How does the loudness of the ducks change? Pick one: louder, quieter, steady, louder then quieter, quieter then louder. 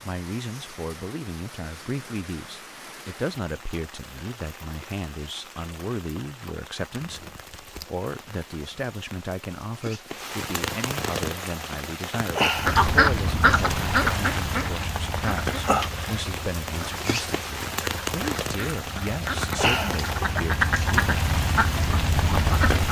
quieter then louder.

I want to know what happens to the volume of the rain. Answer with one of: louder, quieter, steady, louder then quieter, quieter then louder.
louder.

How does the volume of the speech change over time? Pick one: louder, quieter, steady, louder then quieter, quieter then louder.
steady.